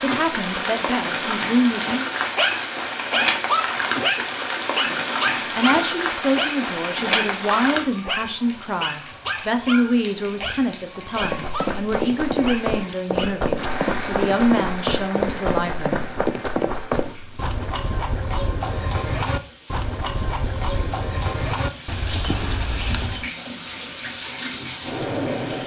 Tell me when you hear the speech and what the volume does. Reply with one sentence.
The speech can be heard briefly from 0.0 to 2.0 s; and from 5.5 to 16.1 s, at a steady volume.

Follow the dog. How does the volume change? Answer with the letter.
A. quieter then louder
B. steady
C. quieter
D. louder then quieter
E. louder
C.